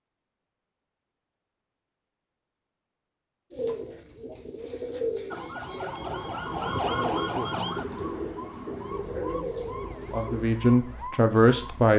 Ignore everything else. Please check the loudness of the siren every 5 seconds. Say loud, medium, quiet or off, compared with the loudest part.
off, loud, medium.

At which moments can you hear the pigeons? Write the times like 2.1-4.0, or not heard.
3.5-10.4.